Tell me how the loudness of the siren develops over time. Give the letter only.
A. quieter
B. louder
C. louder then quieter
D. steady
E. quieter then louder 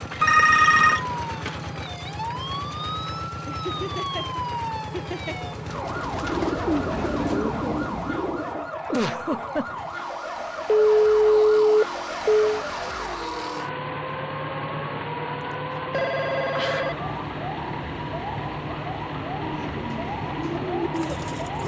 D.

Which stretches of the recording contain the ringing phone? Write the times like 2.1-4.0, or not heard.
0.2-1.1, 10.7-12.6, 15.9-17.1.